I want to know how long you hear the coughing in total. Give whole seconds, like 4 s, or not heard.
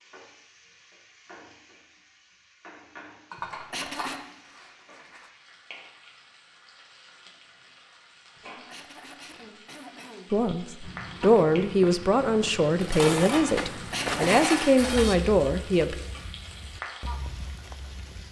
4 s.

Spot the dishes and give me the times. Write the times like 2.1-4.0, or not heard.
3.3-5.3, 12.8-15.2.